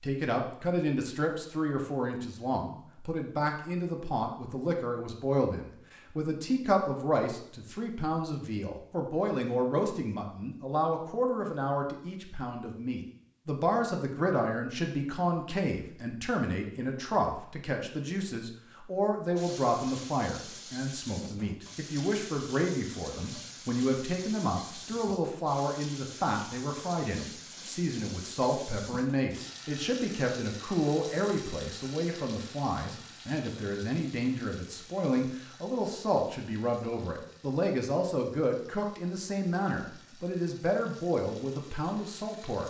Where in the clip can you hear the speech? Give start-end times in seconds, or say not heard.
0.0-42.6.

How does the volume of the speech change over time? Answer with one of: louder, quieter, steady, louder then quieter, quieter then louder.
steady.